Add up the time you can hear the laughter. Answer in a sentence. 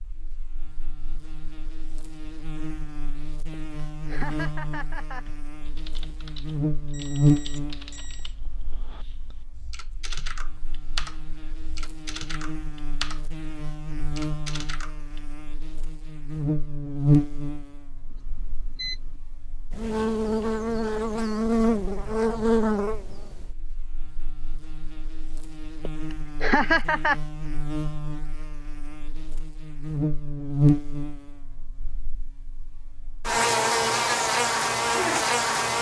The laughter can be heard for 3 seconds in total.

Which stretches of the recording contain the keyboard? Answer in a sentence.
You can hear the keyboard from 5.2 to 15.3 s.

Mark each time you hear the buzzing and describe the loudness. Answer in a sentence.
You can hear the buzzing from 0.0 to 35.7 s, getting quieter then louder.